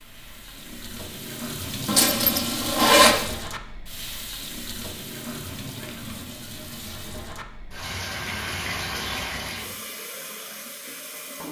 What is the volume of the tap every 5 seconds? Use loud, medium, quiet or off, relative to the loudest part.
loud, loud, medium.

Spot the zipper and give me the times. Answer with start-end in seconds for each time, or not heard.
1.9-3.1.